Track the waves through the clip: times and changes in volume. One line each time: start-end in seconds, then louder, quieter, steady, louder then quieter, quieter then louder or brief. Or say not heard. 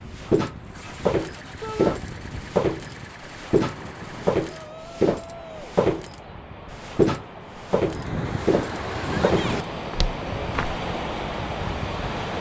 0.0-12.3 louder.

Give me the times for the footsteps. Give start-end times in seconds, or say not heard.
0.1-10.8.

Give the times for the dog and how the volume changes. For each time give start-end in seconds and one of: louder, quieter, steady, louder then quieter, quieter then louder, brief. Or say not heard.
not heard.